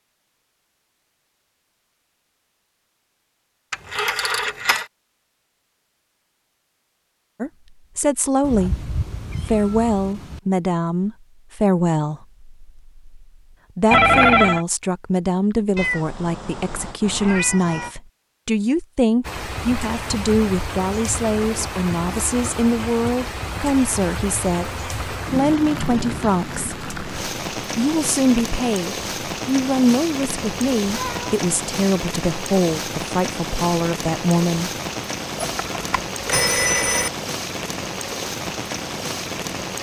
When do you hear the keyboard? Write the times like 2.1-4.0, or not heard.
not heard.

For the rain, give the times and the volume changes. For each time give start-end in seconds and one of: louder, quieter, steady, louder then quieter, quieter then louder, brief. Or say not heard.
19.2-39.7 steady.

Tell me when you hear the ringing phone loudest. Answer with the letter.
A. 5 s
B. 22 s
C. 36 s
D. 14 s
D.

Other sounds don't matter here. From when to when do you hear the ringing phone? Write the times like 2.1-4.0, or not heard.
3.7-4.8, 13.9-14.7, 35.4-37.1.